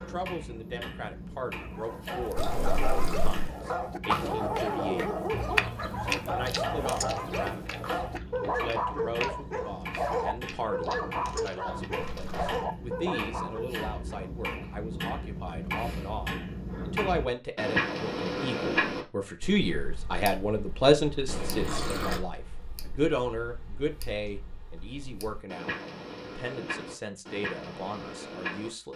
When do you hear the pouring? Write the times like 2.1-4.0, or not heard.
2.4-3.5, 12.0-12.7, 21.2-22.2.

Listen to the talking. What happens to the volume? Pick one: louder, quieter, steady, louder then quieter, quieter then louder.
louder then quieter.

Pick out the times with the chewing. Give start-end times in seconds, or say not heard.
4.0-12.0.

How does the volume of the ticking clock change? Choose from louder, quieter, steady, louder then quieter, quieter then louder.
louder then quieter.